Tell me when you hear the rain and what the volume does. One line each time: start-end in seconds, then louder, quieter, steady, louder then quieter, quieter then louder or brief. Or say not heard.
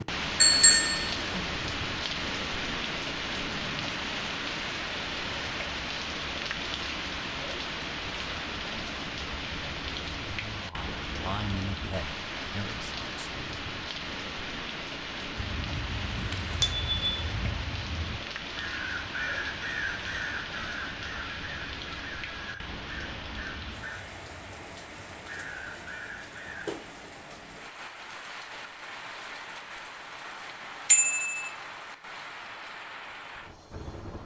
0.0-34.2 quieter.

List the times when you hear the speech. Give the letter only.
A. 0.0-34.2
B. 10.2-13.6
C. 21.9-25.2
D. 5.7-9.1
B.